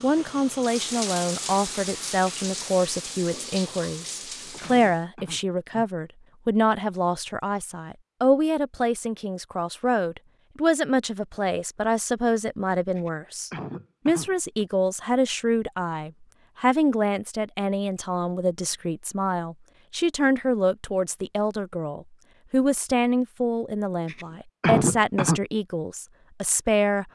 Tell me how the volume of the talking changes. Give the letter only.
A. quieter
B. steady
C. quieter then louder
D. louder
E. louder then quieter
B.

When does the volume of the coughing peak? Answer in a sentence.
The volume of the coughing peaks at 25 seconds.